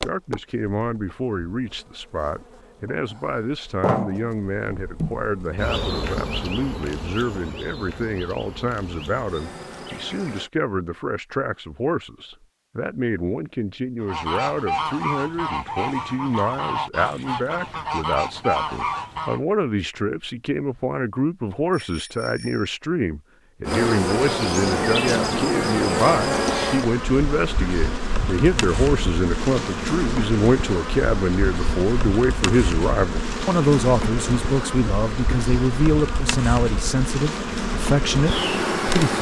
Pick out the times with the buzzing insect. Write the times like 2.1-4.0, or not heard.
0.0-10.5, 23.6-39.1.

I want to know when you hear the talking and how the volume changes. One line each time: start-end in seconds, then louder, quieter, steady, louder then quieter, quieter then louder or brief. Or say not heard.
0.0-39.1 louder.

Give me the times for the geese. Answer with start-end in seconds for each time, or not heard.
14.0-19.4.